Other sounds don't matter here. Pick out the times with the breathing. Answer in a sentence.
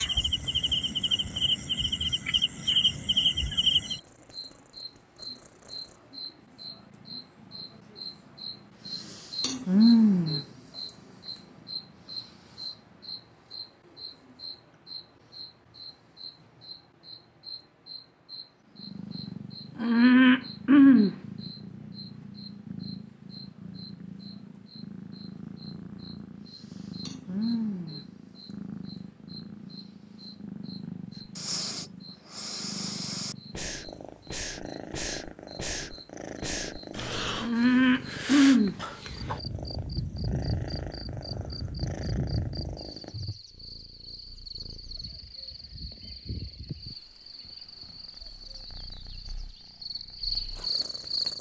You can hear the breathing from 31.2 to 39.0 s.